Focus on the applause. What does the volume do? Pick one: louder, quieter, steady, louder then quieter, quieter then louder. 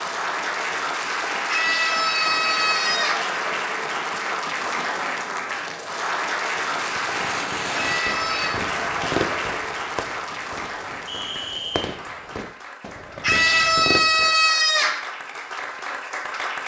quieter.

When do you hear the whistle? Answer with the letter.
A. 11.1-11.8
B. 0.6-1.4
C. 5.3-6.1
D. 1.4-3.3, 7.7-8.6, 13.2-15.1
A.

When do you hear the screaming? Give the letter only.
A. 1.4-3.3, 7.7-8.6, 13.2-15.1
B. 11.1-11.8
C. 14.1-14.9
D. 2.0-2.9
A.